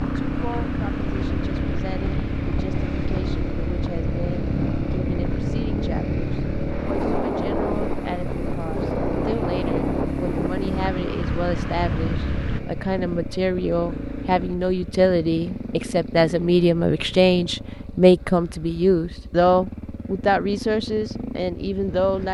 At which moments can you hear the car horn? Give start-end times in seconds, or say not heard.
not heard.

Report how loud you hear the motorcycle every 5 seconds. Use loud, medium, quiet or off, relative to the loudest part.
loud, loud, loud, medium, medium.